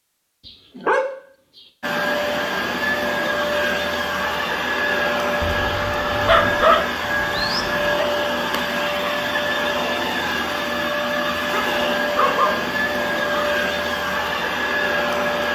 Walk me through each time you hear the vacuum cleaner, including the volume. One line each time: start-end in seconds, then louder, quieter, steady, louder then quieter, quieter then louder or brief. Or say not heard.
1.8-15.5 steady.